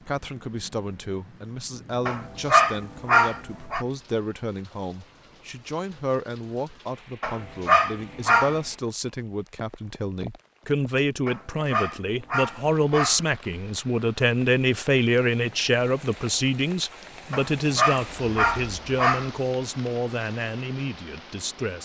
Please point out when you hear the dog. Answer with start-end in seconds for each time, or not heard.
2.0-3.9, 7.2-8.6, 11.2-13.2, 17.3-19.3.